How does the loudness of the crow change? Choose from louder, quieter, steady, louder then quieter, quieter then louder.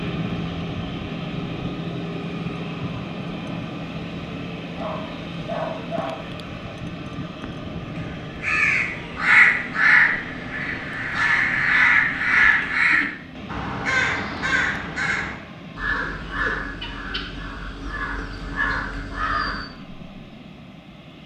quieter.